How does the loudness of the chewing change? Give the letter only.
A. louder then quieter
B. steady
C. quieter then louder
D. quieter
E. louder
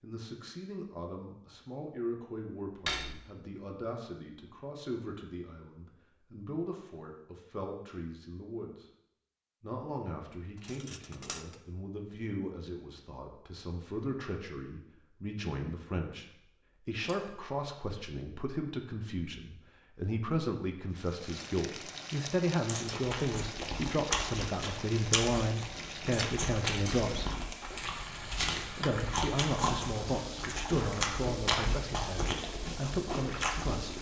B.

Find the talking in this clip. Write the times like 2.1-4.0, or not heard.
0.0-8.8, 9.6-16.2, 16.9-27.4, 28.8-33.9.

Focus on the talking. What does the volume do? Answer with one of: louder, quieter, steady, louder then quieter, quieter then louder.
louder.